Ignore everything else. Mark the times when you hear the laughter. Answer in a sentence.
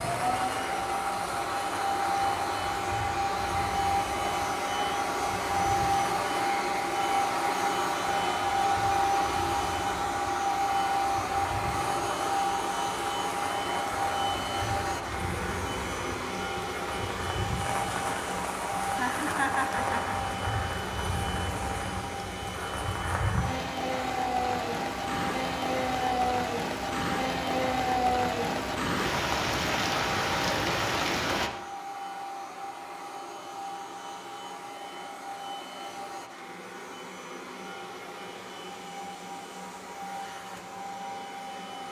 The laughter can be heard from 18.9 to 20.1 s.